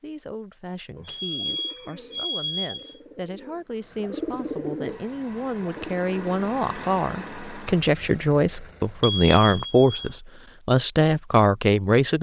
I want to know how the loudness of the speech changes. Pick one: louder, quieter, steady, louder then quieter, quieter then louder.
louder.